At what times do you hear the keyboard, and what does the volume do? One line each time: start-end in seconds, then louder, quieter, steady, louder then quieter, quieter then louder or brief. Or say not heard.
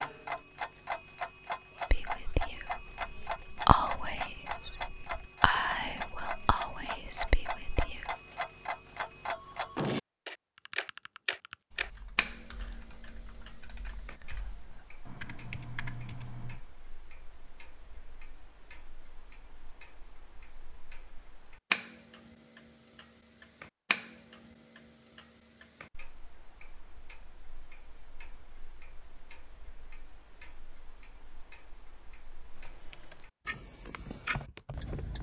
10.6-16.6 quieter then louder
32.5-35.1 brief.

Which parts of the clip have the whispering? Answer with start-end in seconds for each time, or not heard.
1.9-8.2.